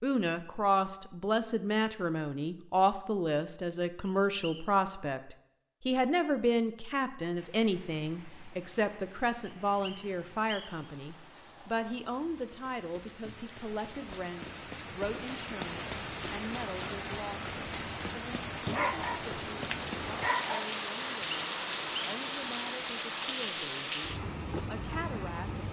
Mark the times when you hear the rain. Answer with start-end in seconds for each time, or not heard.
7.3-25.6.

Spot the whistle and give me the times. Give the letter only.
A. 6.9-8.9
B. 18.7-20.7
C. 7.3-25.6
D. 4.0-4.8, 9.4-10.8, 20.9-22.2
D.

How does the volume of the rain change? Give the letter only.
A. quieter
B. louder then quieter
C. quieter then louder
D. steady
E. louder
E.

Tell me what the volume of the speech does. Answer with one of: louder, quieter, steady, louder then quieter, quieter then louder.
quieter.